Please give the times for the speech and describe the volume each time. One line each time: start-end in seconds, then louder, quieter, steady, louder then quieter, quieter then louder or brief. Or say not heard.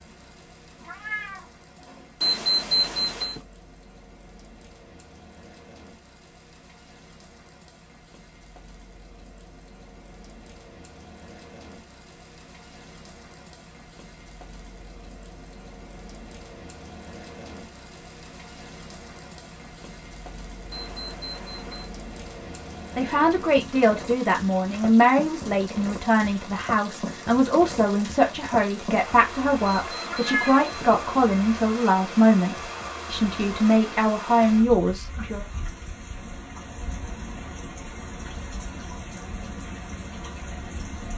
22.9-35.5 steady.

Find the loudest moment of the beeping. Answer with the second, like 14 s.
3 s.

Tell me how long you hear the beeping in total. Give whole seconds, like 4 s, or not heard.
4 s.